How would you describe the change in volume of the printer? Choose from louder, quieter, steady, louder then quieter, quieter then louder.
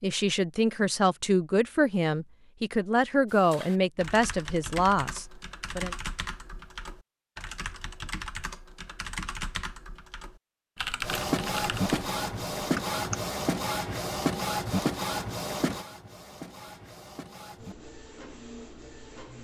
quieter.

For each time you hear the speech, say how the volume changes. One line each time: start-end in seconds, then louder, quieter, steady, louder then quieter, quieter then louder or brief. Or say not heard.
0.0-6.0 steady.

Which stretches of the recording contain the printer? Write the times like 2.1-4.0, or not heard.
11.0-19.3.